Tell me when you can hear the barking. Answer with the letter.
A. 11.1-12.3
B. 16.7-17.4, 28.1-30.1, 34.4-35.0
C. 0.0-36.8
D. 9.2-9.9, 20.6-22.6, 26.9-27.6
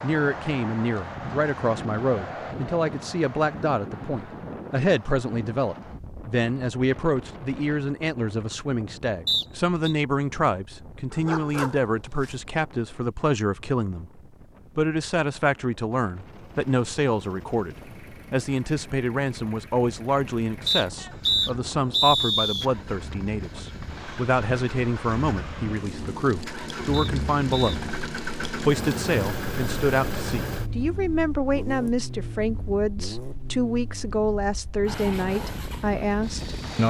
A.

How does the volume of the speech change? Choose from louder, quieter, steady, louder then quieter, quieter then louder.
steady.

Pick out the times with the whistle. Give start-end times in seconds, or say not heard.
9.2-9.9, 20.6-22.6, 26.9-27.6.